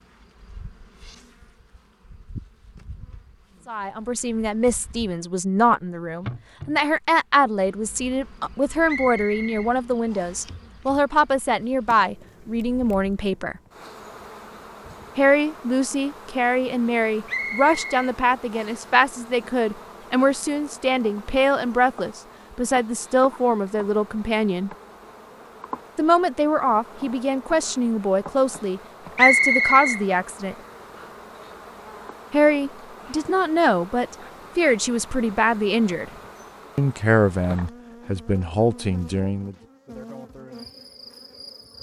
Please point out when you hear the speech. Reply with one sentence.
You can hear the speech from 3.6 to 13.6 s, from 15.2 to 24.7 s, from 25.9 to 30.6 s, from 32.3 to 36.1 s and from 36.8 to 39.5 s.